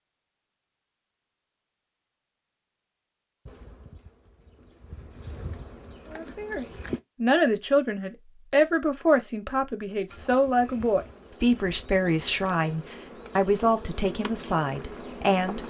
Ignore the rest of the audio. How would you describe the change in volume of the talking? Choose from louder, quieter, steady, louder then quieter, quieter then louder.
steady.